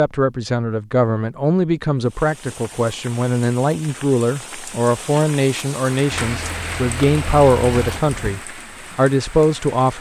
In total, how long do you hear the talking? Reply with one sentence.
The talking can be heard for 10 seconds in total.